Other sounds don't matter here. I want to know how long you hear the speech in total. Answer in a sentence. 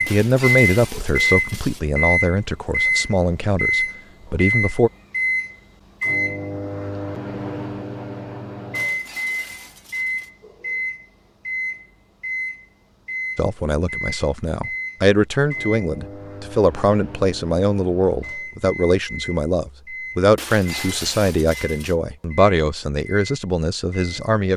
The speech can be heard for 16 seconds in total.